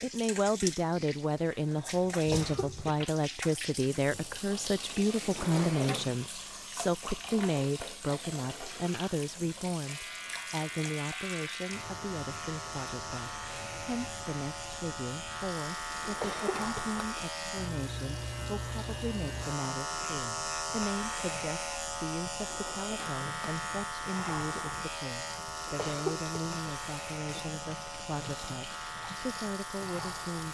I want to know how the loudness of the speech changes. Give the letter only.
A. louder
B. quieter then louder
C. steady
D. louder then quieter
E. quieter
E.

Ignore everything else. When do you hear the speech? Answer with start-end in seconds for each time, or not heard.
0.0-30.4.